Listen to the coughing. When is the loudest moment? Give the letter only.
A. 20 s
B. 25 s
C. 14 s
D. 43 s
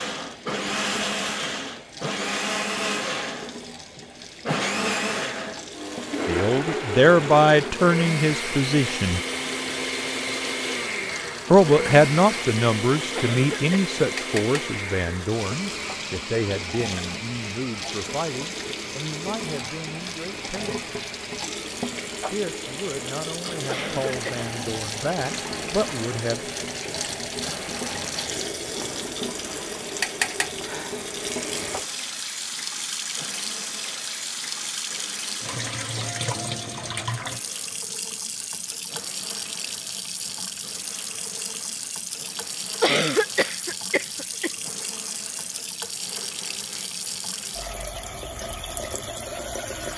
D.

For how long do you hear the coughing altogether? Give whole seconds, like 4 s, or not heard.
3 s.